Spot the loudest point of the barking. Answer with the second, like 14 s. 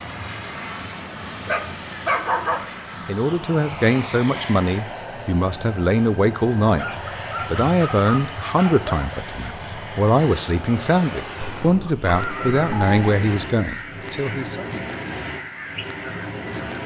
2 s.